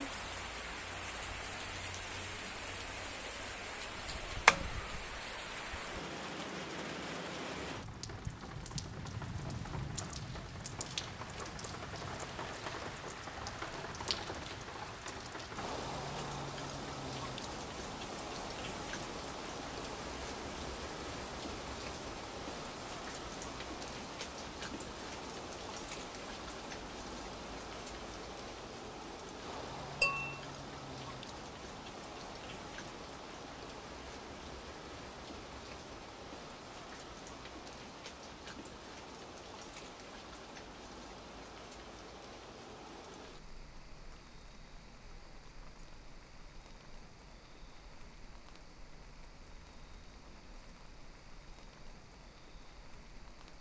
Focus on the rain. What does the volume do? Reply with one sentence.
The volume of the rain goes down.